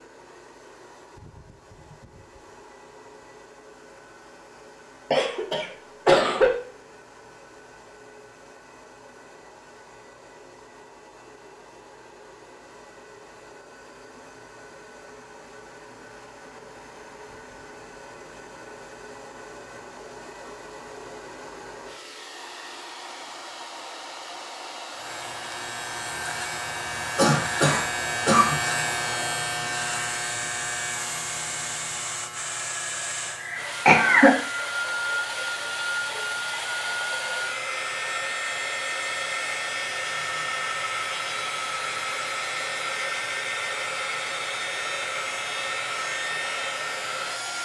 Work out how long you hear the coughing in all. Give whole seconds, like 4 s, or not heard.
4 s.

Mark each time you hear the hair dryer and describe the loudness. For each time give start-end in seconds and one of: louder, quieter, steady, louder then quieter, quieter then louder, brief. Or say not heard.
0.0-47.6 louder.